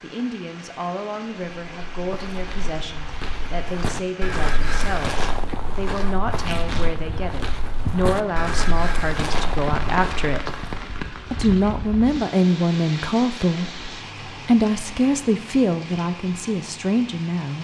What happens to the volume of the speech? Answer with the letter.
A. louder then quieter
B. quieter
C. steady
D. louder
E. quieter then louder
D.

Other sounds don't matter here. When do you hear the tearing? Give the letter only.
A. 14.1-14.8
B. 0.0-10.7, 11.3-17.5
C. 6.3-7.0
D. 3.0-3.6
C.